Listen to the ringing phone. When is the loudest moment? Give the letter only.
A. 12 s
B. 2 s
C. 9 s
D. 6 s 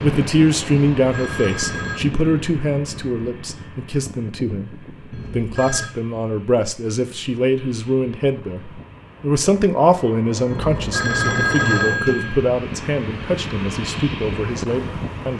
A.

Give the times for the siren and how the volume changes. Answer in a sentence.
You can't hear the siren here.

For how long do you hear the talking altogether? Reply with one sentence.
You can hear the talking for 15 seconds altogether.